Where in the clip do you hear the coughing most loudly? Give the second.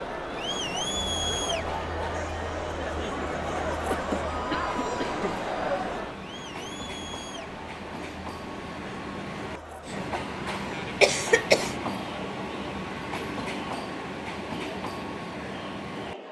11 s.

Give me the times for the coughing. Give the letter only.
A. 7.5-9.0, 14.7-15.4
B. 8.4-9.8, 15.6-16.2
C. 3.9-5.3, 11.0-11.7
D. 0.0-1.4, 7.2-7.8
C.